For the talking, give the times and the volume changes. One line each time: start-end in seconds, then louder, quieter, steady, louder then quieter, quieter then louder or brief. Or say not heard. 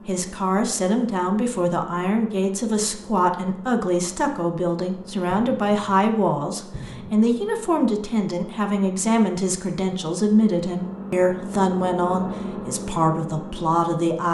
0.1-14.3 steady.